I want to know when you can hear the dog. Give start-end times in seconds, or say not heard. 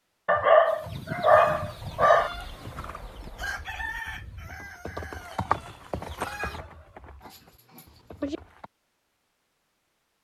0.2-2.3, 7.2-8.4.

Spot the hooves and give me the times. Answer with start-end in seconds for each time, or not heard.
1.5-8.7.